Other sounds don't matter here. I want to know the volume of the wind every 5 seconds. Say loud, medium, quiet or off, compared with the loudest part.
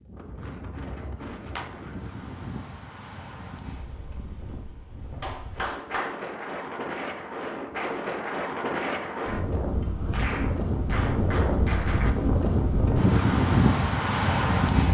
quiet, medium, loud.